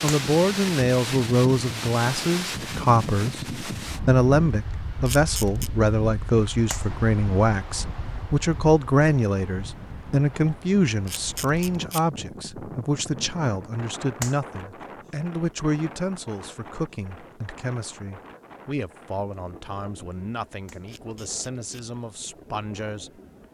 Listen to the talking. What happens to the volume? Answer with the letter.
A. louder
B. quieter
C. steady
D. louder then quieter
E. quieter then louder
B.